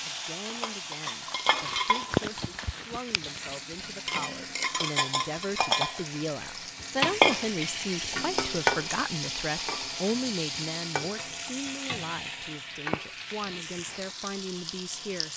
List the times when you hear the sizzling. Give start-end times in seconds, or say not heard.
0.0-15.3.